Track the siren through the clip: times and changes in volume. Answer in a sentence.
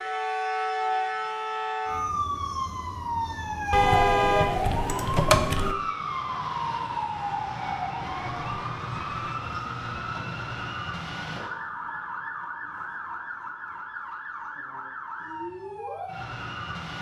You can hear the siren from 0.0 to 16.9 s, getting quieter.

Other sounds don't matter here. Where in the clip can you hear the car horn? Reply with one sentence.
You can hear the car horn from 3.7 to 5.8 s.